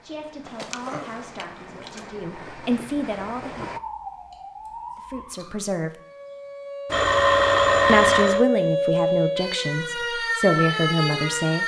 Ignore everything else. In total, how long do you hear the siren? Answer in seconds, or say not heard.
8 s.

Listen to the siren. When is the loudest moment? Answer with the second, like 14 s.
9 s.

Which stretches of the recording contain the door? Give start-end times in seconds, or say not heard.
not heard.